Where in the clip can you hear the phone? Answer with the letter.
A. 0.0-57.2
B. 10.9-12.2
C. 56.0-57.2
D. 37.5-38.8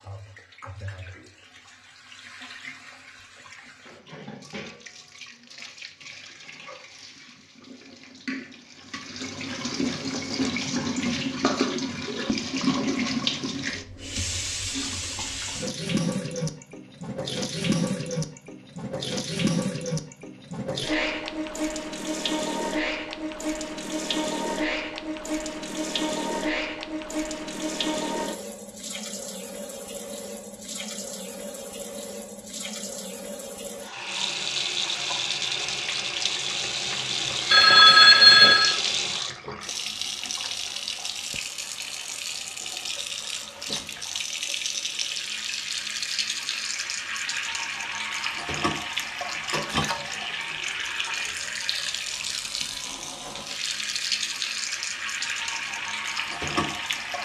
D.